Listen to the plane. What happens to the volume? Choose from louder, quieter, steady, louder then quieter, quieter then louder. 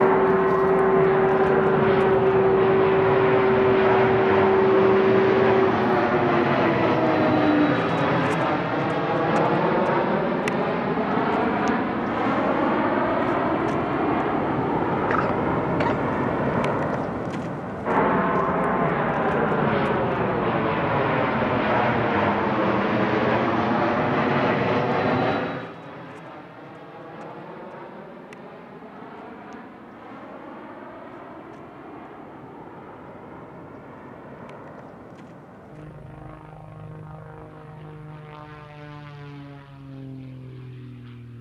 quieter.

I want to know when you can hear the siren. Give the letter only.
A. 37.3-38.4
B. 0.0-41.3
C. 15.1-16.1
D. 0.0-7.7
D.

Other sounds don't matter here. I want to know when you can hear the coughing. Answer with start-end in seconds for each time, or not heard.
15.1-16.1.